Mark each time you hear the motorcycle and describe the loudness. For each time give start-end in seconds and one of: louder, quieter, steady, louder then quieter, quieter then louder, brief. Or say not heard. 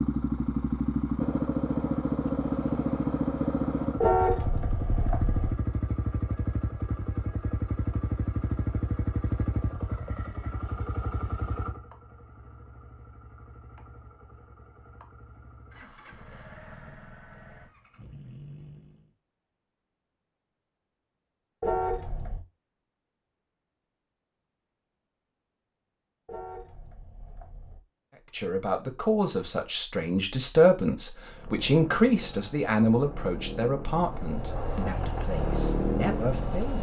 0.0-19.1 quieter
31.2-36.7 louder.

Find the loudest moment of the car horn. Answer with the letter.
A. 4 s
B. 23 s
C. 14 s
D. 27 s
A.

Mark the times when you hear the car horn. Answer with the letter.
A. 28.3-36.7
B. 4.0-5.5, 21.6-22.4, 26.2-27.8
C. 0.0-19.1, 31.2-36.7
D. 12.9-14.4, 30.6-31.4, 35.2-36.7
B.